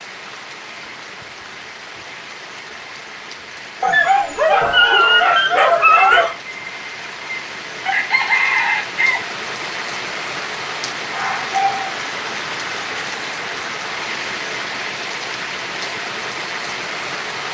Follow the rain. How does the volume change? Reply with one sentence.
The loudness of the rain goes up.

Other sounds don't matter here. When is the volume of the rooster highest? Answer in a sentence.
The volume of the rooster peaks at 8 seconds.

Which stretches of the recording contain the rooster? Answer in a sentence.
The rooster can be heard from 6.2 to 9.2 s.